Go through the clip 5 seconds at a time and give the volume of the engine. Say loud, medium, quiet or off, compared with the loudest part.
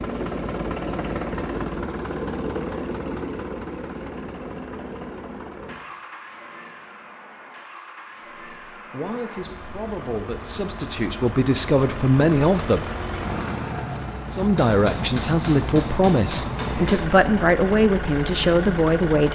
loud, medium, loud, loud.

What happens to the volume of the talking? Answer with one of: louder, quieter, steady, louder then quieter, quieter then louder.
louder.